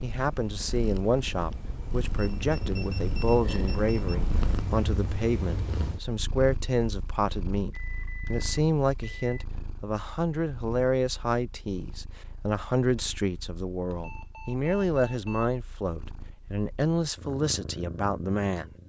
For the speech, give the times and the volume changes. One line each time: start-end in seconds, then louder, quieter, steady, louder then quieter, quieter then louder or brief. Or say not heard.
0.0-18.8 steady.